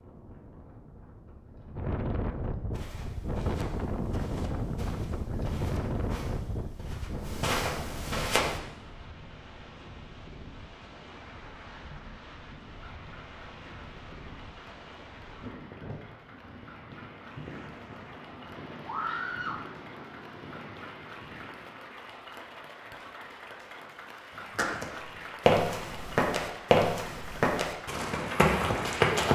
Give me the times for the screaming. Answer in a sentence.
You can hear the screaming from 18.9 to 19.6 s.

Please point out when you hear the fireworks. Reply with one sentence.
You can't hear the fireworks here.